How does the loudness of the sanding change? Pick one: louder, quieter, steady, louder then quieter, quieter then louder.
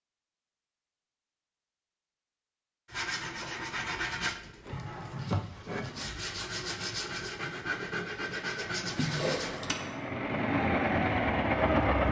steady.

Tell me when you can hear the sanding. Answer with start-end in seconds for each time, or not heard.
2.9-9.6.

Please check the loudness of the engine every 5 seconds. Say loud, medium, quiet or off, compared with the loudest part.
off, quiet, loud.